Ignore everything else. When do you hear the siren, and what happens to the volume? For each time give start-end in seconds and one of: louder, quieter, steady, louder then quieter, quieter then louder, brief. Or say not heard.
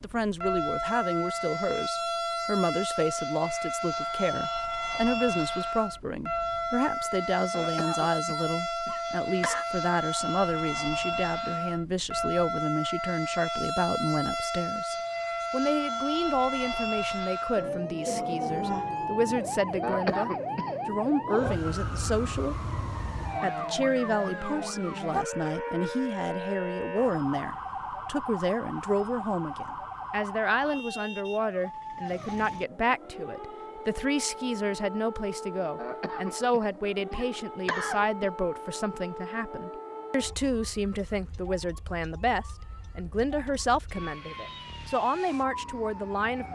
0.0-46.5 quieter.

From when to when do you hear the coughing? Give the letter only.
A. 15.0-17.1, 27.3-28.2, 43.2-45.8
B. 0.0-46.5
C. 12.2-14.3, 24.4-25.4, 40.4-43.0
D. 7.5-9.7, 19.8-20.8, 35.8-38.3
D.